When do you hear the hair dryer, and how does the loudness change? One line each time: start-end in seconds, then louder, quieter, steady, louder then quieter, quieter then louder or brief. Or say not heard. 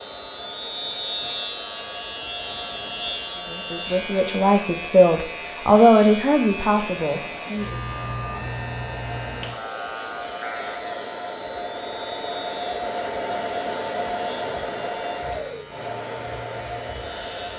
0.0-17.5 louder.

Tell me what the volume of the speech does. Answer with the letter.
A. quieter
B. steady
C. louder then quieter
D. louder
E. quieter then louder
C.